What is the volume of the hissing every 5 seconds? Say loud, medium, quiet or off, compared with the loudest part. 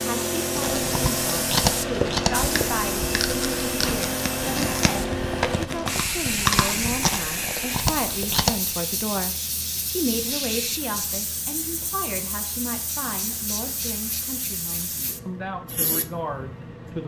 loud, loud, medium, medium.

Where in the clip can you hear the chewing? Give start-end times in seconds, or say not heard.
0.6-8.6.